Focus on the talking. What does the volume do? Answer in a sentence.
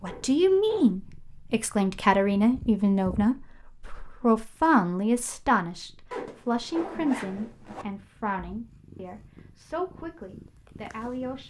The volume of the talking goes down.